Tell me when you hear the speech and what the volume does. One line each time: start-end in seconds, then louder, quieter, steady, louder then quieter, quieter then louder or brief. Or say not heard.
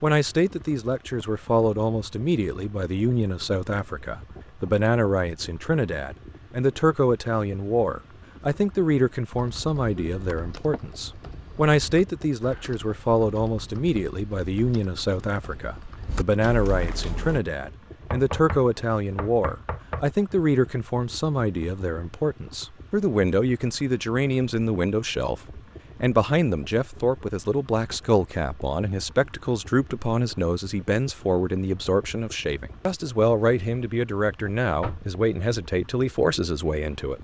0.0-37.1 steady.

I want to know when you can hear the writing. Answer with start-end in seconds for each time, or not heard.
not heard.